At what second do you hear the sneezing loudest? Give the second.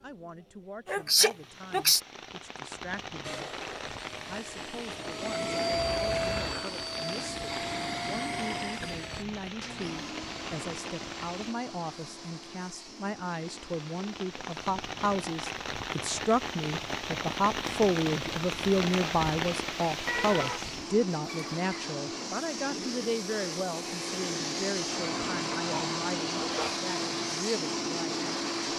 1 s.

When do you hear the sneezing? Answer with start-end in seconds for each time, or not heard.
0.8-2.0, 25.7-26.8.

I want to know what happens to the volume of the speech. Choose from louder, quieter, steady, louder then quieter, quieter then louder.
louder then quieter.